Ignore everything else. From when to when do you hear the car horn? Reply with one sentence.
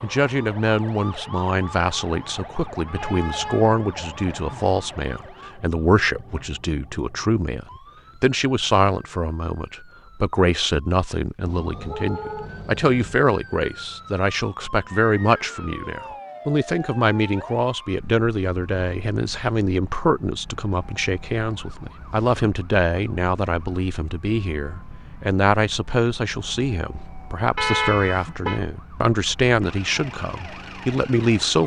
You can hear the car horn from 2.9 to 4.8 s, from 11.4 to 13.2 s and from 27.6 to 28.6 s.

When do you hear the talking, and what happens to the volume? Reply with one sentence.
The talking can be heard from 0.0 to 31.6 s, at a steady volume.